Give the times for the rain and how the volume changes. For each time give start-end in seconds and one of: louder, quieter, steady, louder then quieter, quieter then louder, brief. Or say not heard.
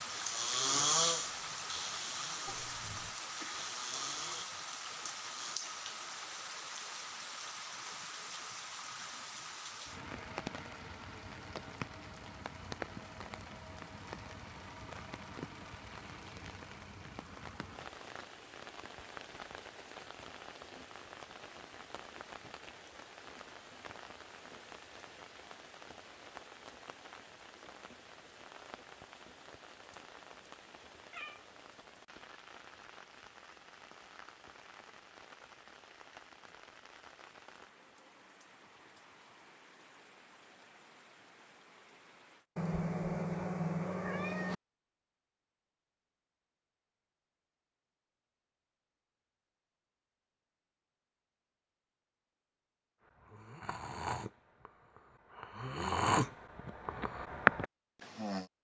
0.0-42.5 quieter.